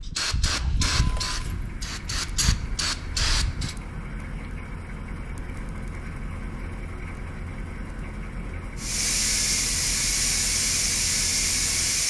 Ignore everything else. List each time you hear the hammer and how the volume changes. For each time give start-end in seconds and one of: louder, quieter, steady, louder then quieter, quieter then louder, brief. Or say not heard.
not heard.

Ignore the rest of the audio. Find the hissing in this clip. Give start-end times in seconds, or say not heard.
0.0-3.8, 8.8-12.0.